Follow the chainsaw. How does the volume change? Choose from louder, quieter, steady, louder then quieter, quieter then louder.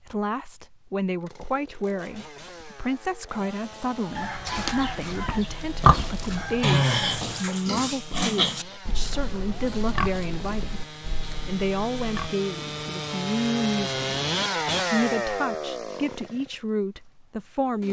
louder.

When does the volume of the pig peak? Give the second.
6 s.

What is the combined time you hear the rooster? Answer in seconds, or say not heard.
3 s.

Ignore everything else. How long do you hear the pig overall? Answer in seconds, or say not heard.
8 s.